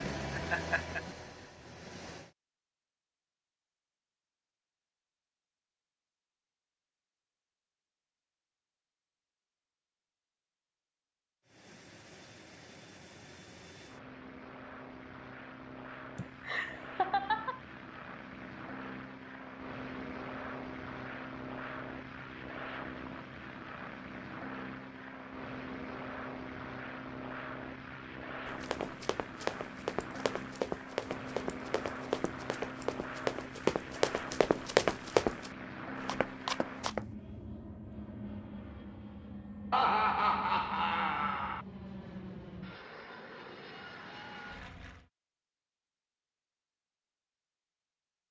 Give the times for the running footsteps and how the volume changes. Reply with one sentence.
The running footsteps can be heard from 28.4 to 37.0 s, getting louder.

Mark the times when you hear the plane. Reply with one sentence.
The plane can be heard from 0.0 to 2.3 s and from 11.4 to 45.1 s.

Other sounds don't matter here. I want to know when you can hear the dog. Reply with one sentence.
The dog can't be heard in this clip.